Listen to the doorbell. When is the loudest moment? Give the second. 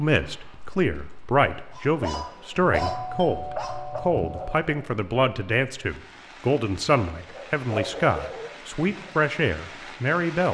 3 s.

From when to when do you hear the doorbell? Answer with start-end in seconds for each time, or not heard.
2.8-4.5.